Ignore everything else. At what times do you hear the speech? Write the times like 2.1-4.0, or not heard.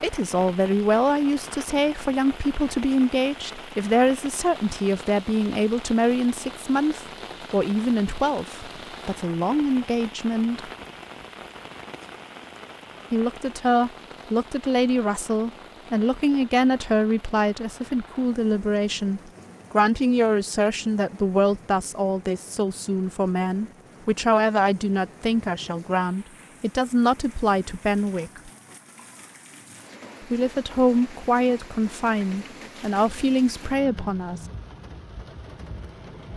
0.0-10.7, 13.1-28.5, 30.2-34.4.